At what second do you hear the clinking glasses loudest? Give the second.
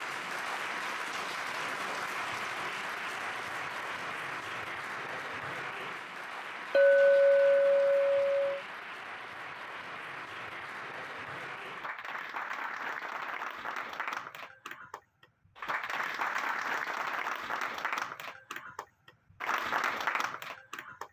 7 s.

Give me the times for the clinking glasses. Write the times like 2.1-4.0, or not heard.
6.7-8.6.